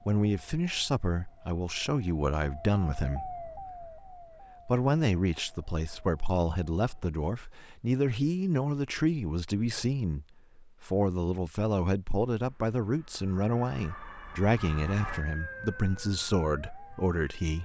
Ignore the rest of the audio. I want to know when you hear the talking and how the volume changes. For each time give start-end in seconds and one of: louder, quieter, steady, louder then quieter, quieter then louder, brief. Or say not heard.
0.0-17.5 steady.